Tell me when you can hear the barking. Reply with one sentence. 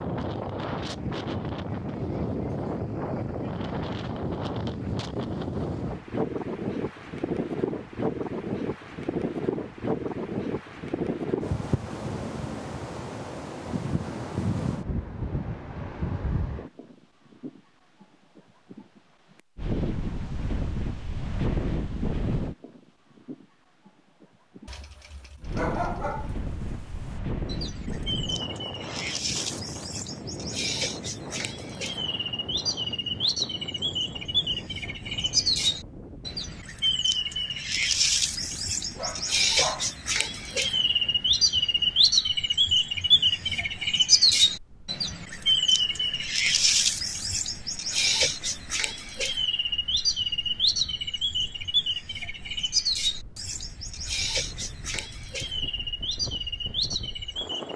You can hear the barking from 24.6 to 26.4 s and from 39.0 to 40.0 s.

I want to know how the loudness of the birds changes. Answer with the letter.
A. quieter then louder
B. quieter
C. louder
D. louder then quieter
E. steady
D.